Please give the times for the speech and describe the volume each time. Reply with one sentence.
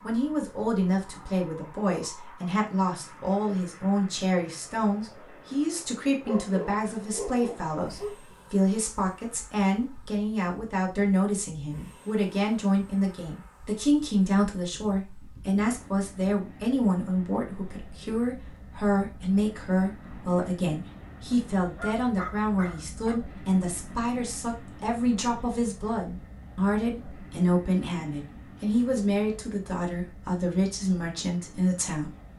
The speech can be heard from 0.0 to 32.1 s, at a steady volume.